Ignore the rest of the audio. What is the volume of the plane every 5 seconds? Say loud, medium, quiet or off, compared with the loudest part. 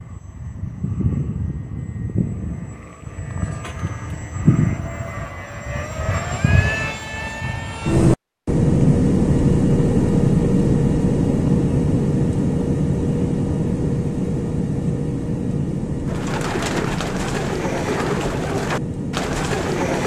medium, loud, loud, medium.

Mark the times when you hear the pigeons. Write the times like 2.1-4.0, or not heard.
16.1-20.0.